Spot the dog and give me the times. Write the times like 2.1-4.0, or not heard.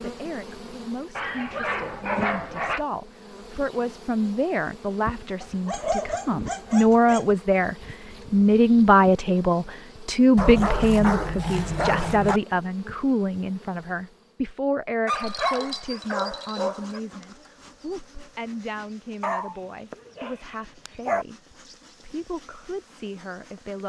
1.1-2.9, 5.4-7.3, 10.3-12.4, 15.1-17.0, 19.2-21.2.